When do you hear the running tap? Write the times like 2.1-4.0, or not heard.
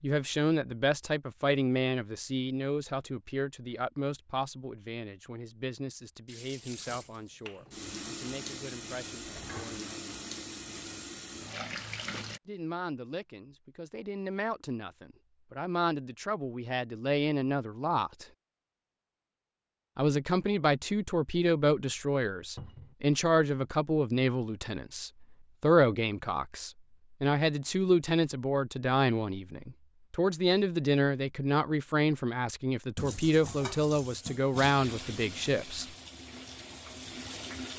6.2-12.4, 33.0-37.7.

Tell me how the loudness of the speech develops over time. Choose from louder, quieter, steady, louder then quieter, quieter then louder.
quieter then louder.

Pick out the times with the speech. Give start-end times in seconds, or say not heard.
0.0-10.2, 12.4-18.2, 19.9-35.9.